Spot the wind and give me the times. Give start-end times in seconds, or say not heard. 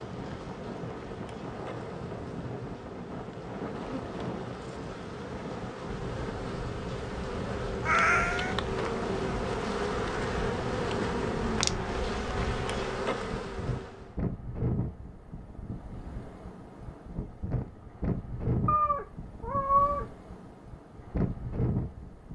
0.0-22.3.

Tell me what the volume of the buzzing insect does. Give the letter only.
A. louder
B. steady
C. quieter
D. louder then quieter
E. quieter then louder
A.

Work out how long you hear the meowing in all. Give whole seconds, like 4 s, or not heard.
2 s.